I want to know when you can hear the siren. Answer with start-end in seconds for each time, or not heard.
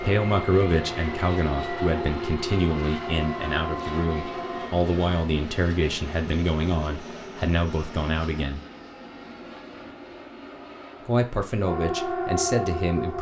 0.1-4.7, 11.7-13.1.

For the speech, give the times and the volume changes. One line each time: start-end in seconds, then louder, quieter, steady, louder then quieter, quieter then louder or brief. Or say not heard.
0.0-8.6 steady
11.1-13.1 brief.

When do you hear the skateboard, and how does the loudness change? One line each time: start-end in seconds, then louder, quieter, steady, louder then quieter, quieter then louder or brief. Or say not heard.
not heard.